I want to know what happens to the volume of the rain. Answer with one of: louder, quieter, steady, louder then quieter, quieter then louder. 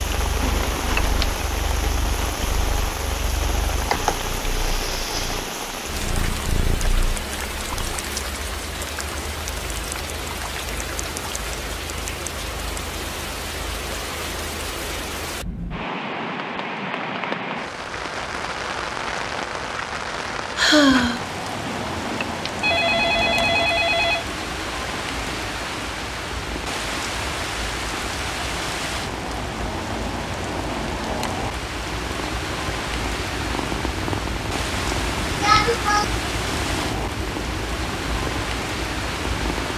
steady.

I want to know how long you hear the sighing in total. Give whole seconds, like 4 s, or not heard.
3 s.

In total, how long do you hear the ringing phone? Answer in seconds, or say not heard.
4 s.